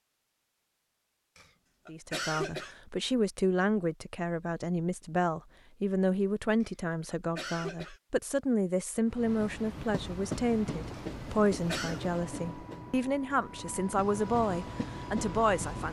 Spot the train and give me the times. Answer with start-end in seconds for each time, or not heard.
9.1-15.8.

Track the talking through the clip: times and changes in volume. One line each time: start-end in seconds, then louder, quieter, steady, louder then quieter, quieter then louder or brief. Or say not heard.
1.9-15.8 steady.